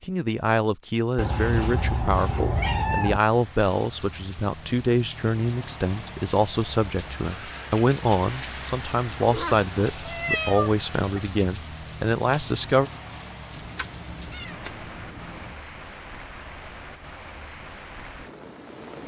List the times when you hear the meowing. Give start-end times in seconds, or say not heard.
1.1-3.2, 9.2-11.2, 13.5-15.6.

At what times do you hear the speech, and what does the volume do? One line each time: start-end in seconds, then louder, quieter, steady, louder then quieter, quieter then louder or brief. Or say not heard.
0.0-12.9 steady.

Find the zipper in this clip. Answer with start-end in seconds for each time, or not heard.
not heard.